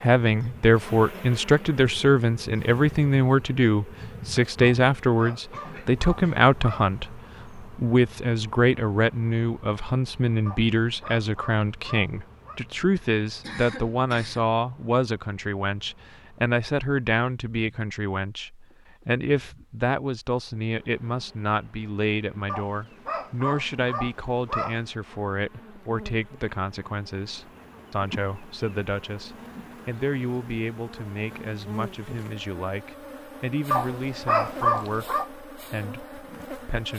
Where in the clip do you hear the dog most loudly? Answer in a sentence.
The volume of the dog peaks at 35 seconds.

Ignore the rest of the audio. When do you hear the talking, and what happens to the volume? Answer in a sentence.
You can hear the talking from 0.0 to 36.9 s, getting quieter.